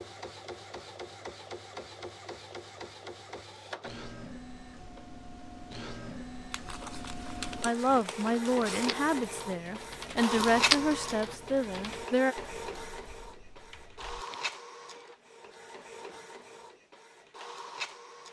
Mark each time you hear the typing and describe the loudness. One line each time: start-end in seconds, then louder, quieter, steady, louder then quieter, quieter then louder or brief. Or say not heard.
7.8-14.6 louder then quieter.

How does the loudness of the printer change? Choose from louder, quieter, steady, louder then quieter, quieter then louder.
louder then quieter.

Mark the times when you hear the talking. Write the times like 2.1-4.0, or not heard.
7.6-12.3.